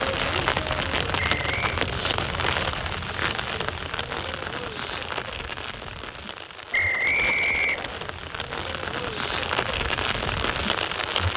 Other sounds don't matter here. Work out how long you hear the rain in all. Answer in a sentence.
The rain can be heard for 11 seconds in total.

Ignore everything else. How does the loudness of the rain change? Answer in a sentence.
The loudness of the rain goes down, then up.